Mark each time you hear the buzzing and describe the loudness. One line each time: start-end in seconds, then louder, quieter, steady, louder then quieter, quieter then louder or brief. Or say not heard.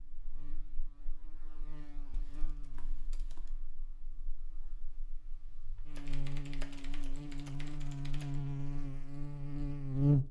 0.0-10.2 louder.